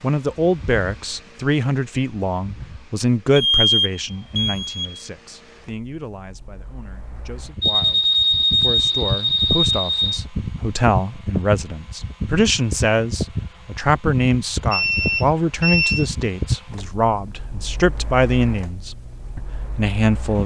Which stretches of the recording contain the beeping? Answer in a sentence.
The beeping can be heard from 3.4 to 5.0 s, from 7.6 to 10.2 s and from 14.7 to 16.1 s.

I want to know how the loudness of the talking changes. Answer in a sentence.
The volume of the talking goes down, then up.